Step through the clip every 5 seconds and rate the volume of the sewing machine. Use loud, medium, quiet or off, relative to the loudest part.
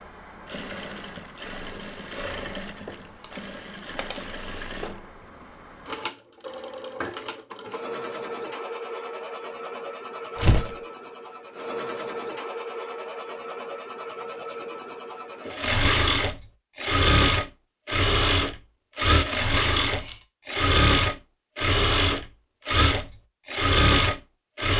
quiet, quiet, quiet, loud, loud.